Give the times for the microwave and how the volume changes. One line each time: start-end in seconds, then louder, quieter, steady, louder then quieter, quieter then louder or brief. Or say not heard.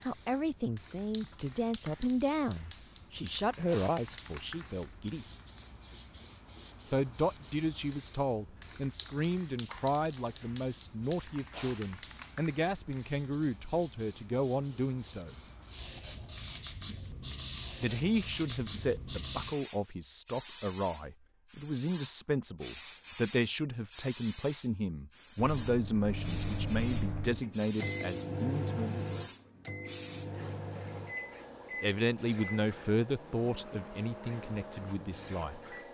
25.4-35.8 quieter.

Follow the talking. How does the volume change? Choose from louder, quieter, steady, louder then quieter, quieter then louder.
steady.